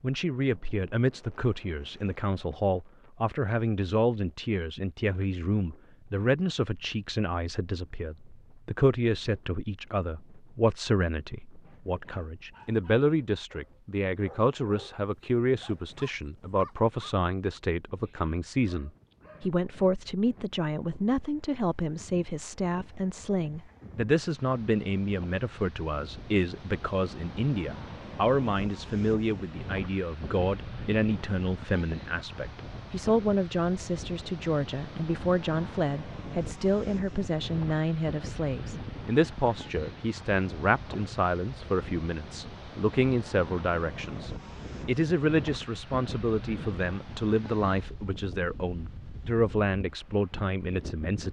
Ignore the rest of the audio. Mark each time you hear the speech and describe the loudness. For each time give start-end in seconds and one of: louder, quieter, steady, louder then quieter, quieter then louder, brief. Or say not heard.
0.0-51.2 steady.